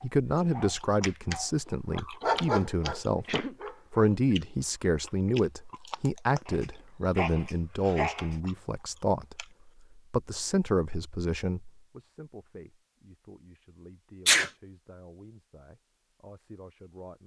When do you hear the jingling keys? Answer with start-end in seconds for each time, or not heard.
not heard.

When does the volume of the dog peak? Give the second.
2 s.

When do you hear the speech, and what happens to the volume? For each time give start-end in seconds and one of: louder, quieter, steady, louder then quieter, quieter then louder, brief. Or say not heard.
0.0-17.2 quieter.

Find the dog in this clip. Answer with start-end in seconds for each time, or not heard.
0.0-4.1.